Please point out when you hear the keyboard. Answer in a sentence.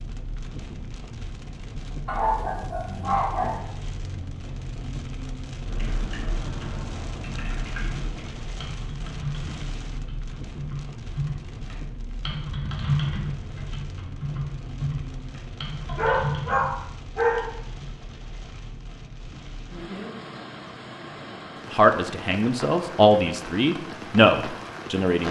The keyboard can be heard from 5.7 to 16.8 s.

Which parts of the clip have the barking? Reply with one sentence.
The barking can be heard from 2.0 to 3.6 s and from 15.8 to 17.5 s.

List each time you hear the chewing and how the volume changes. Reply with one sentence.
You can't hear the chewing here.